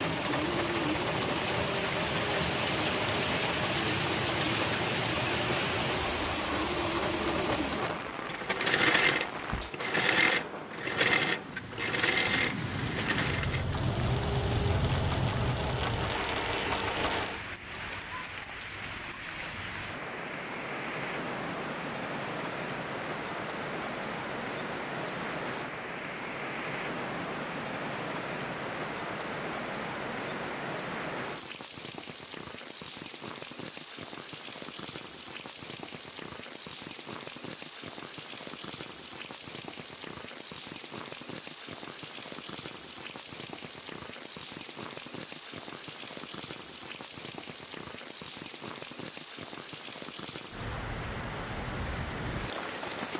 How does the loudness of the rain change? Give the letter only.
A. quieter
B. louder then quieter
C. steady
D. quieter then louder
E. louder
A.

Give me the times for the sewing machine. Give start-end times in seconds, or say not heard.
0.0-17.4.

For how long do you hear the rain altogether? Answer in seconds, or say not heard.
53 s.